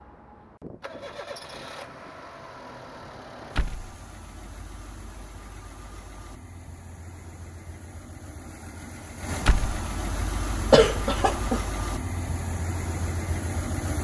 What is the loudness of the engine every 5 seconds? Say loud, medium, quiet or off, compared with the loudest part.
medium, medium, loud.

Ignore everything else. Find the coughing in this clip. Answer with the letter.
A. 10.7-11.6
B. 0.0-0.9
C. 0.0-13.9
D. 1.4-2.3
A.